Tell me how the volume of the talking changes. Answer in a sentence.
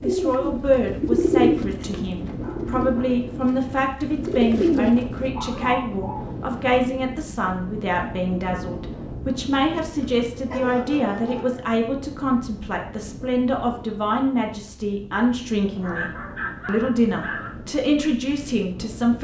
The volume of the talking stays about the same.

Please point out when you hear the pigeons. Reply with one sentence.
The pigeons can be heard from 0.0 to 5.3 s.